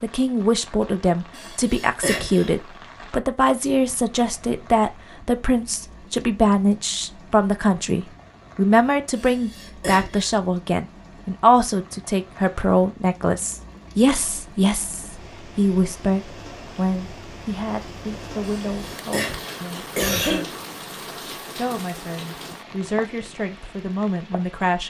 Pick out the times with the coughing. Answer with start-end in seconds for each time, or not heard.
1.3-2.5, 9.2-10.3, 18.4-20.4.